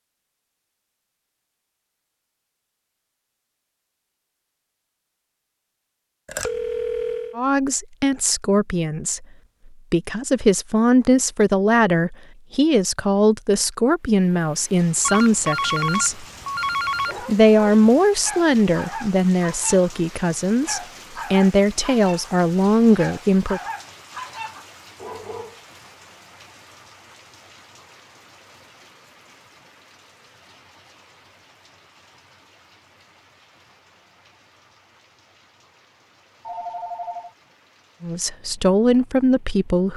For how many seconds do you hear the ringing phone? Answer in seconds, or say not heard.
4 s.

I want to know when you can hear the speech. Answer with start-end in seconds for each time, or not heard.
7.3-9.2, 9.9-16.2, 17.2-23.6, 38.0-39.9.